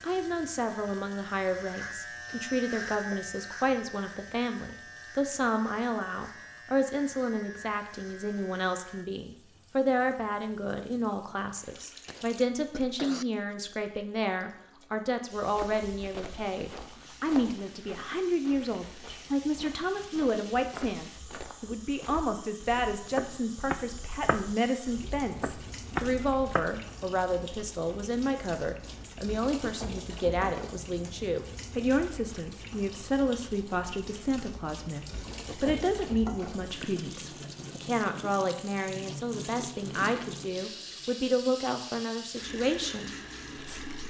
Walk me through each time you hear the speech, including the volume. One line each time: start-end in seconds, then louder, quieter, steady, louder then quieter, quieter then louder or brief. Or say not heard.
0.0-43.9 steady.